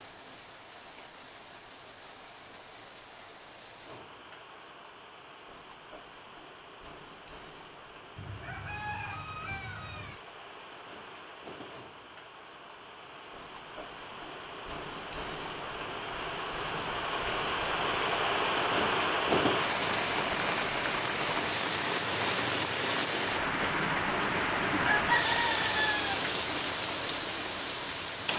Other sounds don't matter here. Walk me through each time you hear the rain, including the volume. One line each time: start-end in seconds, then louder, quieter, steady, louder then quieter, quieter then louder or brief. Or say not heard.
0.0-28.3 louder.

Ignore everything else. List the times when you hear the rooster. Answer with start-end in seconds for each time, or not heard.
8.2-10.2, 24.8-26.2.